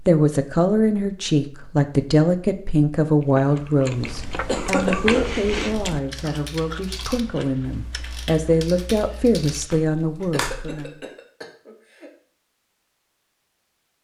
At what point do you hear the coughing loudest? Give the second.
5 s.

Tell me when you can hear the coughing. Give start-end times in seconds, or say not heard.
4.5-5.3, 9.9-12.1.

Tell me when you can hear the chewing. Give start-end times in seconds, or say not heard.
3.0-8.2.